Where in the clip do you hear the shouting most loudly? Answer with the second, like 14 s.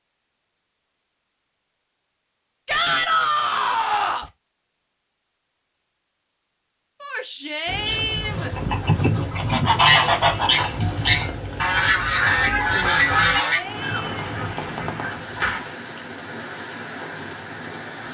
3 s.